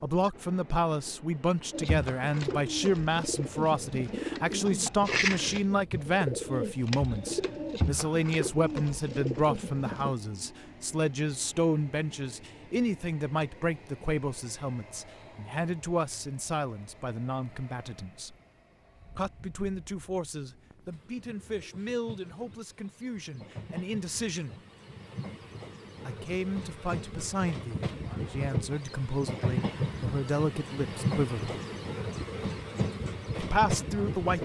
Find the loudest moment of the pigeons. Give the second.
5 s.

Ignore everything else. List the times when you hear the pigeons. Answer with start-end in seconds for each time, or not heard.
1.7-10.1.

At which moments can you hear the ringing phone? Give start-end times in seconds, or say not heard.
not heard.